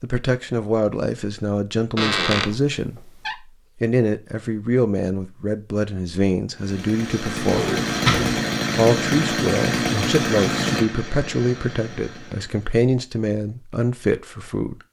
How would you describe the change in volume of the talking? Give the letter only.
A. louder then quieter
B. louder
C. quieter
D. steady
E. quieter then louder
D.